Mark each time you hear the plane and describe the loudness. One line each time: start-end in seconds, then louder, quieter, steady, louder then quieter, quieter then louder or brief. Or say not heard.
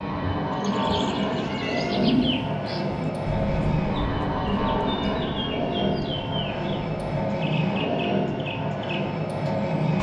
0.0-9.9 steady.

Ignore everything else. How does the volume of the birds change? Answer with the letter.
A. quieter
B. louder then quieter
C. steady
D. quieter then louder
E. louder
A.